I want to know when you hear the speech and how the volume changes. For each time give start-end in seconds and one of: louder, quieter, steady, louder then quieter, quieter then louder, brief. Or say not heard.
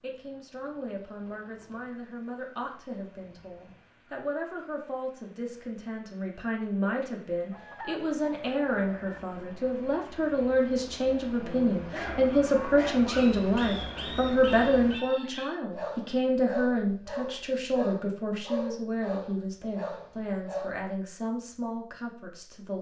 0.0-22.7 louder then quieter.